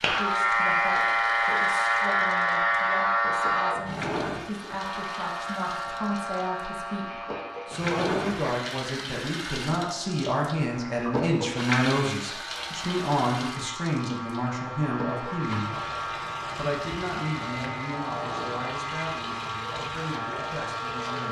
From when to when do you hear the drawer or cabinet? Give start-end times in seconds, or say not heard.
3.8-4.9, 7.7-8.4, 18.1-18.6.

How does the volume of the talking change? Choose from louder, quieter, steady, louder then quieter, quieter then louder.
louder then quieter.